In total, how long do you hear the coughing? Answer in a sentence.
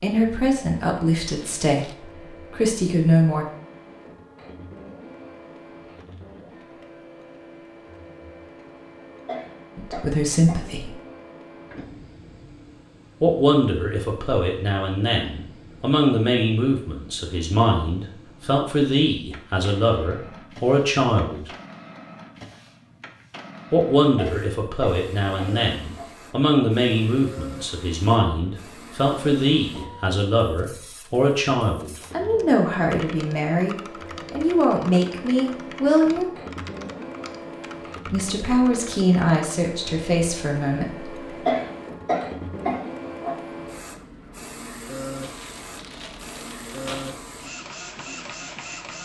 You can hear the coughing for 5 seconds altogether.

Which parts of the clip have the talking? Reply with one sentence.
You can hear the talking from 0.0 to 3.5 s, from 9.8 to 10.9 s, from 13.2 to 21.4 s, from 23.7 to 36.3 s and from 38.0 to 41.1 s.